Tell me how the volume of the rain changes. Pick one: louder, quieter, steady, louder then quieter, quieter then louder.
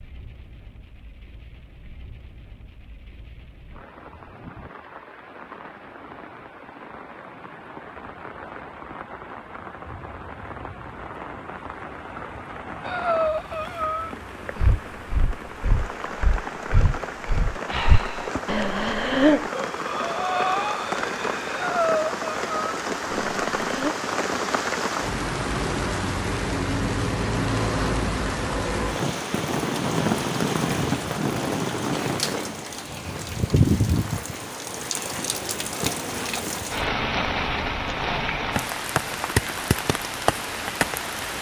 louder.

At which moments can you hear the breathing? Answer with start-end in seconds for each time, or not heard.
12.8-23.9.